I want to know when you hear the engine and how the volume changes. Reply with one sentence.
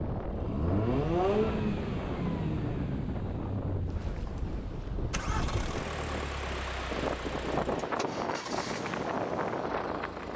You can hear the engine from 0.1 to 10.3 s, getting quieter.